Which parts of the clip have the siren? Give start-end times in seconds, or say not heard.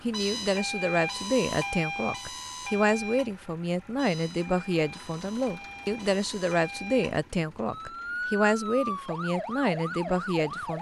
0.0-10.7.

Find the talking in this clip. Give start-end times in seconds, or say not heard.
0.0-10.7.